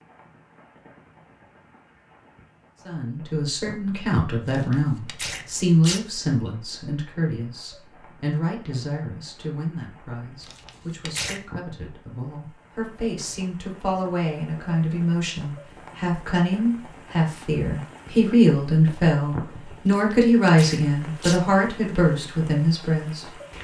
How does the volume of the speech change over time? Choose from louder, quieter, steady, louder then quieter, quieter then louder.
quieter then louder.